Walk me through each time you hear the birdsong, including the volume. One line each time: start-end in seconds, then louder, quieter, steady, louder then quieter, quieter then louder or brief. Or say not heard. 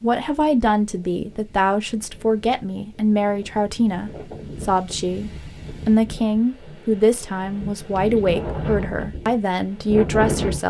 not heard.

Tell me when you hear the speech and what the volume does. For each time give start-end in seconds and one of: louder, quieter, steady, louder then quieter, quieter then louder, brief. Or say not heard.
0.0-10.6 steady.